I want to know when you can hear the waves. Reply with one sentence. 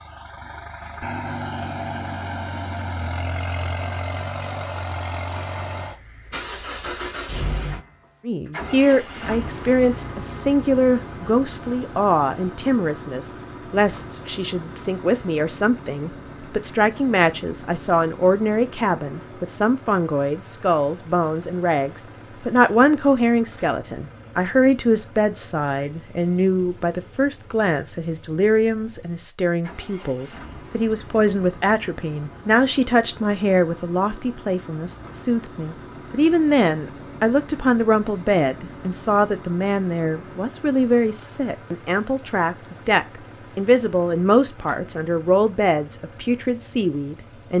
The waves can't be heard in this clip.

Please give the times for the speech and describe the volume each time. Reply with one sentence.
The speech can be heard from 8.2 to 47.5 s, at a steady volume.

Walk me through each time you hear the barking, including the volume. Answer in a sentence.
The barking can't be heard in this clip.